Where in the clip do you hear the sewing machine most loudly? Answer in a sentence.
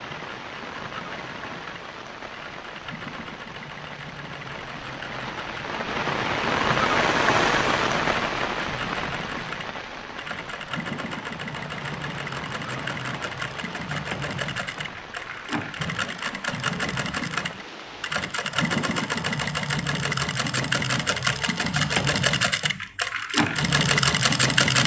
The loudest moment of the sewing machine is at 24 seconds.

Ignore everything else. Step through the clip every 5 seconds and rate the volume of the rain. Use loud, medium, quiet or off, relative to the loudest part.
quiet, loud, quiet, quiet, off.